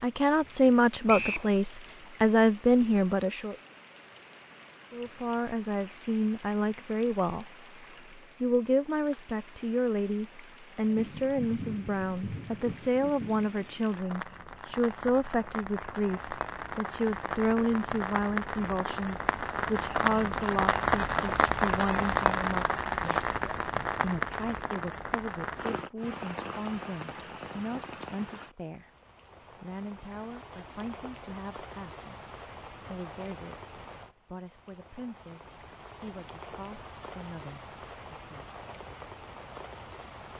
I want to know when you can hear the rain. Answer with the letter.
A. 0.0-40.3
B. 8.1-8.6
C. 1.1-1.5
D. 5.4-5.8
A.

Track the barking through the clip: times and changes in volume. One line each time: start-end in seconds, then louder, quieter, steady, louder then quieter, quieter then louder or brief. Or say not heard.
not heard.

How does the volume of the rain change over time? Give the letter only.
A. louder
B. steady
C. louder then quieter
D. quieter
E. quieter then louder
C.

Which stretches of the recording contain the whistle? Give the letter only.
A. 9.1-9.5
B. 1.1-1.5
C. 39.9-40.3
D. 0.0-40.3
B.